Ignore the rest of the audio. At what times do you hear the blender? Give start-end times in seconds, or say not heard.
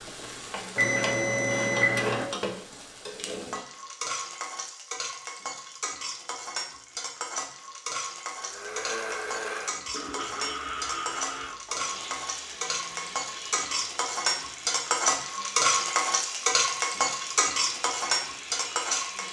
8.3-19.2.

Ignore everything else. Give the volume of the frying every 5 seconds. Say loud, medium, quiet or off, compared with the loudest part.
medium, medium, medium, loud.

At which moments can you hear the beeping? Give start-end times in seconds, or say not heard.
0.8-2.2.